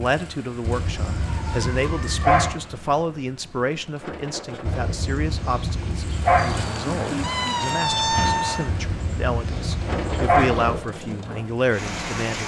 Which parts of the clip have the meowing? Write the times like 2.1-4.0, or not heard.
1.1-2.3, 6.3-8.7.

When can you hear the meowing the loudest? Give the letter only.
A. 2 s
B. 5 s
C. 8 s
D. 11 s
C.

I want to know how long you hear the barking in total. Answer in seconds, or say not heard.
6 s.